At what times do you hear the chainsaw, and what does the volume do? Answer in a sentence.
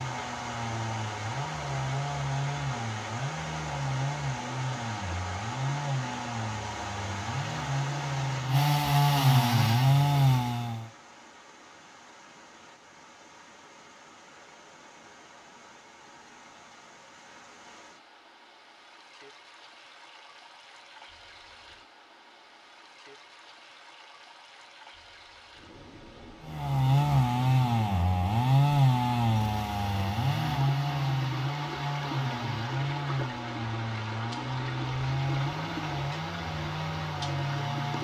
The chainsaw can be heard from 0.0 to 10.9 s, getting louder; and from 26.4 to 37.9 s, getting quieter.